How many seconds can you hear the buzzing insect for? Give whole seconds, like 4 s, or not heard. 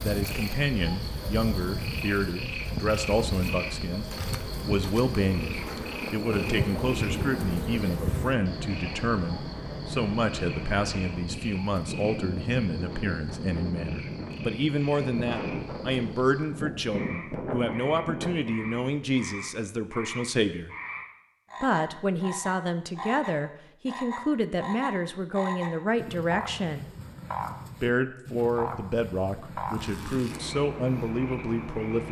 8 s.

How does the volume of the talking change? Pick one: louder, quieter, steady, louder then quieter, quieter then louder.
steady.